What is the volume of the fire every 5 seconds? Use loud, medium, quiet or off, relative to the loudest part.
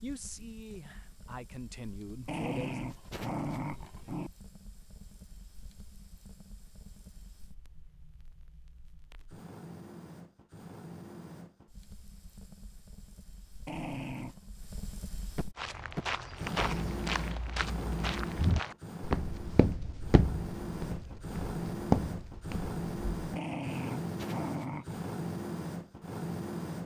quiet, quiet, quiet, loud, loud, loud.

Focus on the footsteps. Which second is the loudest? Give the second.
22 s.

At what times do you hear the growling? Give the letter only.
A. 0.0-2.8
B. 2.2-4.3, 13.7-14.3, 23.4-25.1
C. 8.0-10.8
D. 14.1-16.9
B.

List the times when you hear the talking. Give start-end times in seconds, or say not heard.
0.0-2.8.